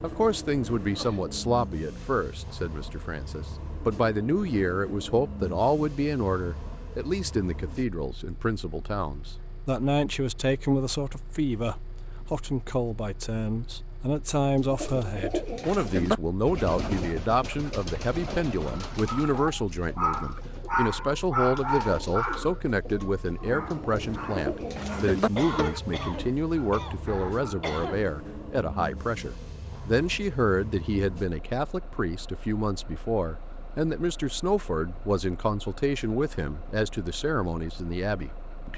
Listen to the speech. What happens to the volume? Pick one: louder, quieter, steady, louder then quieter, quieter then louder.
steady.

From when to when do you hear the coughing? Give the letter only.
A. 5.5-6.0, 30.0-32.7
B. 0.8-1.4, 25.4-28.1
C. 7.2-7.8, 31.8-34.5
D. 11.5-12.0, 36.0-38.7
B.